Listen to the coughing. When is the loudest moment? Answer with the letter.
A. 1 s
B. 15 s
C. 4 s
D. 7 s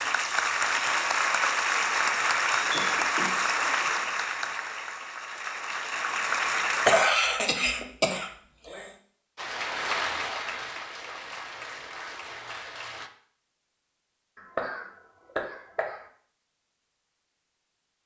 D.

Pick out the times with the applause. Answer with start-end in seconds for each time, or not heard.
0.0-7.0, 9.3-13.1.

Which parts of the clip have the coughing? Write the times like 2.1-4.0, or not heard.
2.7-3.6, 6.8-8.9, 14.3-16.0.